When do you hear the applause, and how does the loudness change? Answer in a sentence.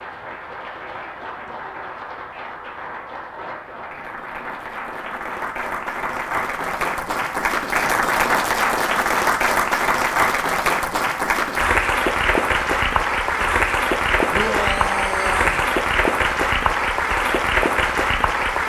You can hear the applause from 0.0 to 18.6 s, getting louder.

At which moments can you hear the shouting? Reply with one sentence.
You can hear the shouting from 14.3 to 15.6 s.